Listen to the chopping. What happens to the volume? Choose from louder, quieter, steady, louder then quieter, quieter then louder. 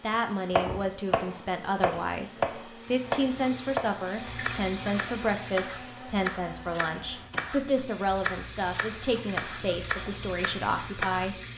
quieter.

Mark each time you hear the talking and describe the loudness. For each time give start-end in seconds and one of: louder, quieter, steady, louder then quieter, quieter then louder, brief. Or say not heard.
0.0-11.3 steady.